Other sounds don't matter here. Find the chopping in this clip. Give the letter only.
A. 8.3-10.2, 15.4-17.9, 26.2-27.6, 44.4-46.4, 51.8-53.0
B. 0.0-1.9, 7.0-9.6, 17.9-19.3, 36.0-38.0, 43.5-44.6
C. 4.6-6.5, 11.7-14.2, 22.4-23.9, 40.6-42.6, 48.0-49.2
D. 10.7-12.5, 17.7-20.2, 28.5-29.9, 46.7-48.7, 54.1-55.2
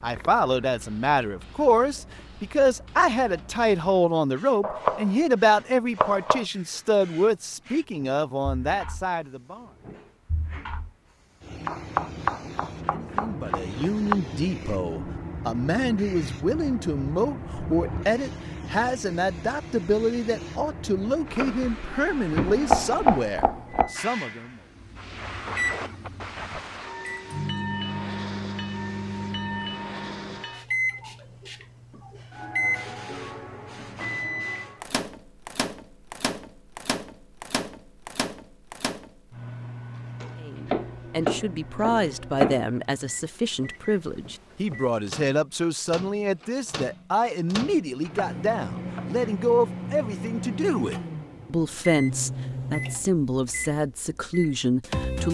C.